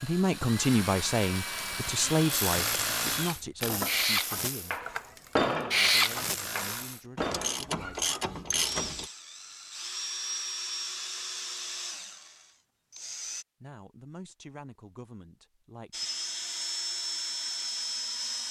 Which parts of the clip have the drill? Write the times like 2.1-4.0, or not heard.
0.0-13.4, 15.9-18.4.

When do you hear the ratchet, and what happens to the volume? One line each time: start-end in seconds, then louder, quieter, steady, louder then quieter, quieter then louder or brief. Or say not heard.
1.5-9.1 quieter then louder.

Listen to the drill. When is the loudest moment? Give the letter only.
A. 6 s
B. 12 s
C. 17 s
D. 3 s
A.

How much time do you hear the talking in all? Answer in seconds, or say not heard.
10 s.